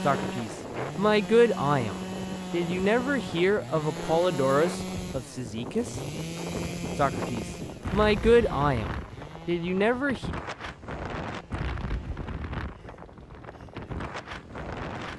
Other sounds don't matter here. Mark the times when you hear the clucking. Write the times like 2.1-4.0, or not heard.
not heard.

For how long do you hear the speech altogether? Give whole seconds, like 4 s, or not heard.
9 s.